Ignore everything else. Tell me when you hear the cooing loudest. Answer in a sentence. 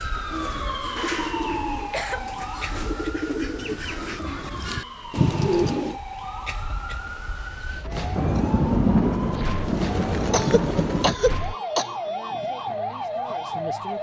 The loudest moment of the cooing is at 6 seconds.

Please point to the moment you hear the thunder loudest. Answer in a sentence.
The loudest moment of the thunder is at 9 seconds.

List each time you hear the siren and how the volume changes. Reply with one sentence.
The siren can be heard from 0.0 to 13.9 s, getting quieter then louder.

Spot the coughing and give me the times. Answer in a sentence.
You can hear the coughing from 0.9 to 2.3 s, from 5.2 to 5.8 s and from 10.3 to 11.9 s.